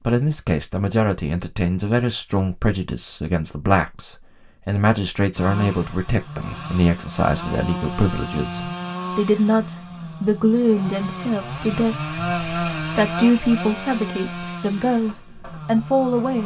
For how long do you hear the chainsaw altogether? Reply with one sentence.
You can hear the chainsaw for 11 seconds altogether.